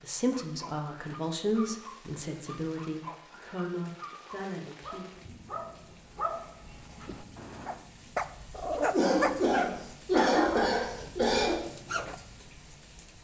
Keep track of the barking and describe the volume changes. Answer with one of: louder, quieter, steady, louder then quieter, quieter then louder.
louder.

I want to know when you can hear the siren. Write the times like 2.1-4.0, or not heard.
not heard.